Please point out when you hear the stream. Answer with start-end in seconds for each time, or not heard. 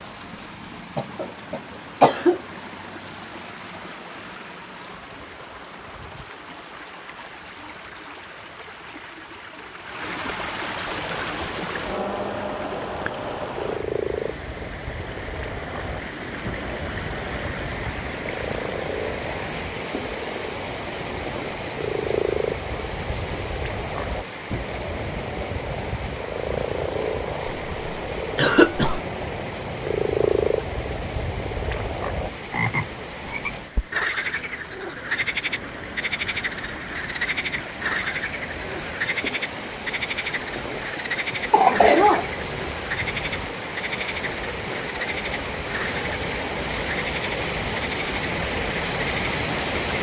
0.0-49.9.